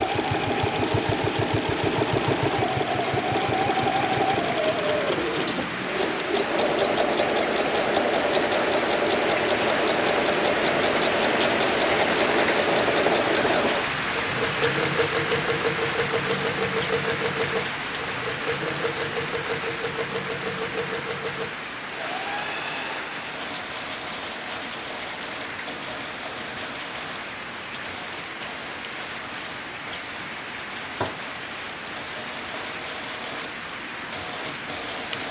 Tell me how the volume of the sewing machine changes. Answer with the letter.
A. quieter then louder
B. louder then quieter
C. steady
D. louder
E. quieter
E.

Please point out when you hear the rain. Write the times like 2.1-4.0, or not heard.
0.0-35.2.